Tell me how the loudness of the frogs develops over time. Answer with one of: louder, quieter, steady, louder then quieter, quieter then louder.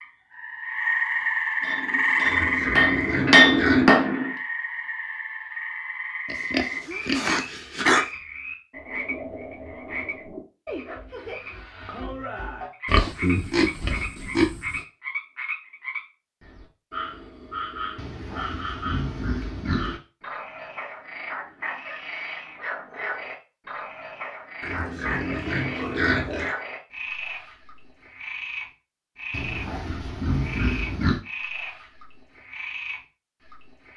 quieter.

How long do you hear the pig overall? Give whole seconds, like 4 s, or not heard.
11 s.